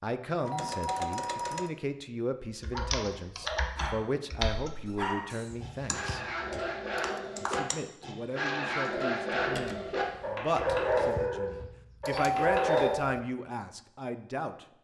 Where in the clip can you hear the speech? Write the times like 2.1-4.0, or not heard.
0.0-6.2, 7.4-14.7.